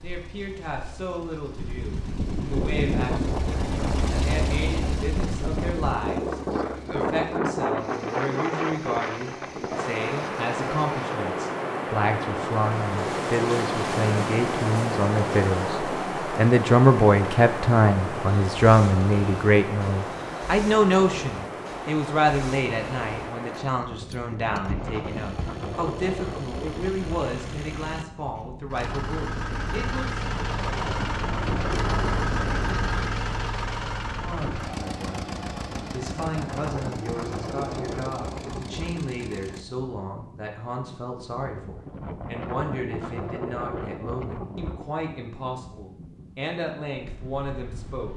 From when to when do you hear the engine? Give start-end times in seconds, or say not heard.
0.0-11.2, 18.4-39.6.